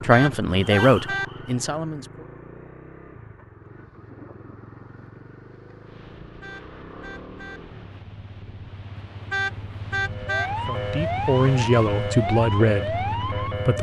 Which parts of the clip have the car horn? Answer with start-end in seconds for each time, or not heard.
0.1-1.2, 6.4-7.6, 9.3-10.5.